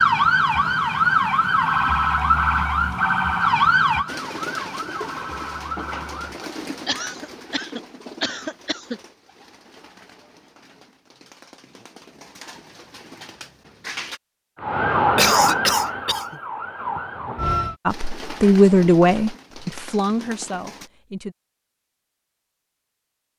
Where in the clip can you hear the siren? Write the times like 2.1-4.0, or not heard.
0.0-6.5, 14.6-17.8.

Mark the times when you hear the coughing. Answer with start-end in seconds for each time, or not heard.
6.8-9.0, 15.2-16.4.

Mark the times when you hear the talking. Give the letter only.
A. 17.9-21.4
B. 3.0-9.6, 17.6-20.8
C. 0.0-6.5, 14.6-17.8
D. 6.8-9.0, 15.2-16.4
A.